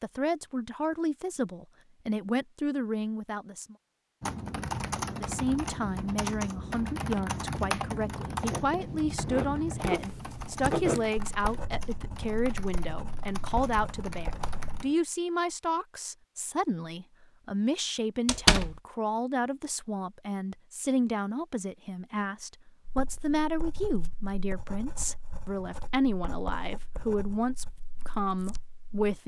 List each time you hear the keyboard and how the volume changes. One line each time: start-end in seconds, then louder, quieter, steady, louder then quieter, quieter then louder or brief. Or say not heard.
4.2-14.9 quieter.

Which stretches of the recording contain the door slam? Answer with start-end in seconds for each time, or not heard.
18.2-18.8.